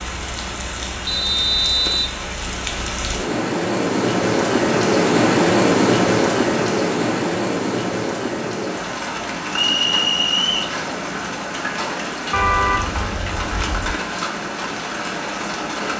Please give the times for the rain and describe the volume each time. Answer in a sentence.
You can hear the rain from 0.0 to 15.9 s, getting louder then quieter.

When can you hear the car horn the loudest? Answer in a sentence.
The volume of the car horn peaks at 13 seconds.